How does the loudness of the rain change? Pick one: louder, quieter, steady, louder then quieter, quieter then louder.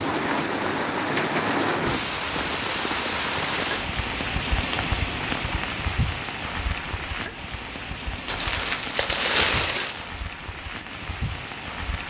quieter.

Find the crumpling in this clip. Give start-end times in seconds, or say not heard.
8.2-10.2.